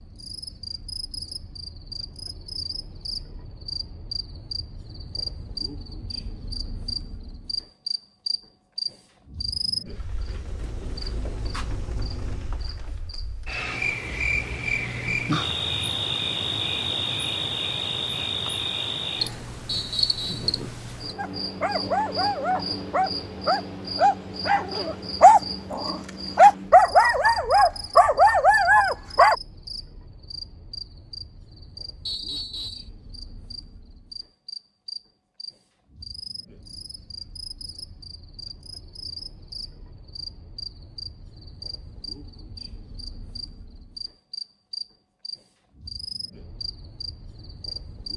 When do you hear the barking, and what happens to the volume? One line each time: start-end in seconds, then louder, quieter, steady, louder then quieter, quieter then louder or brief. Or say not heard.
21.1-29.4 louder.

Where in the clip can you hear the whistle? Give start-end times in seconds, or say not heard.
19.6-20.5, 32.0-32.9.